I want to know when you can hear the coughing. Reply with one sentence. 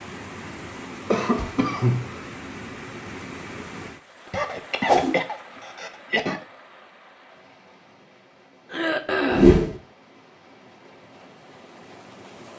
You can hear the coughing from 1.1 to 2.2 s, from 4.3 to 6.4 s and from 8.7 to 9.6 s.